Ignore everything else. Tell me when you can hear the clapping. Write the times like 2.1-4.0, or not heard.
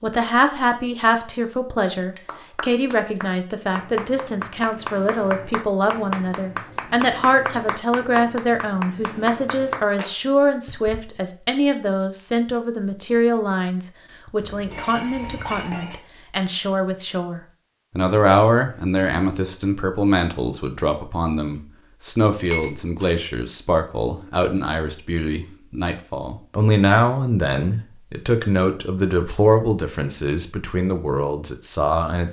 2.2-11.2.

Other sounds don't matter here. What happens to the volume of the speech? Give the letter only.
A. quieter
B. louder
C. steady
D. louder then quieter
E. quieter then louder
C.